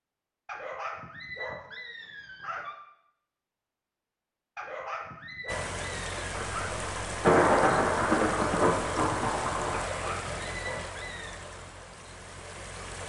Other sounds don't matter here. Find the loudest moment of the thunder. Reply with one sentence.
The loudest moment of the thunder is at 7 seconds.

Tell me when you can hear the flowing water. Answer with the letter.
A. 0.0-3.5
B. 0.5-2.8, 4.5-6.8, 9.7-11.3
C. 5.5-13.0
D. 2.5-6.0
C.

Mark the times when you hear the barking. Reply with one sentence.
You can hear the barking from 0.5 to 2.8 s, from 4.5 to 6.8 s and from 9.7 to 11.3 s.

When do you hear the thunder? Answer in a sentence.
You can hear the thunder from 6.3 to 9.8 s.